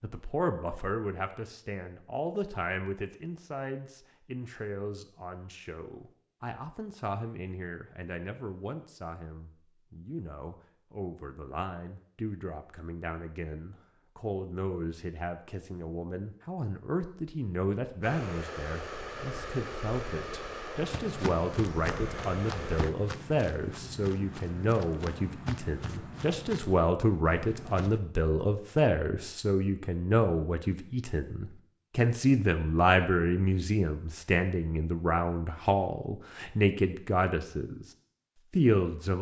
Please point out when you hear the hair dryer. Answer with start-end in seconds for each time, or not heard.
18.0-22.9.